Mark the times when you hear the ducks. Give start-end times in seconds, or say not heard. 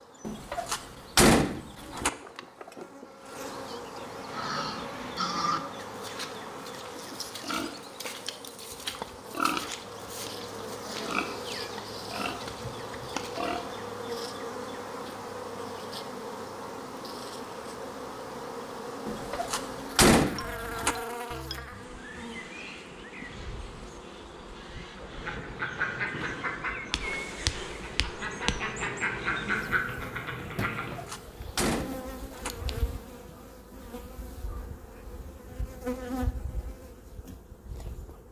24.9-31.1.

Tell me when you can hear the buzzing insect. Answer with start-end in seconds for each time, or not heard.
0.0-38.2.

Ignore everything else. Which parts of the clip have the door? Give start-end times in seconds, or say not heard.
0.2-2.1, 19.1-20.9, 30.7-32.5.